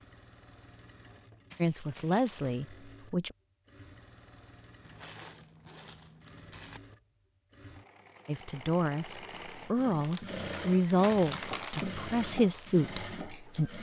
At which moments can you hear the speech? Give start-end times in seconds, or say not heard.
1.6-3.4, 8.2-13.7.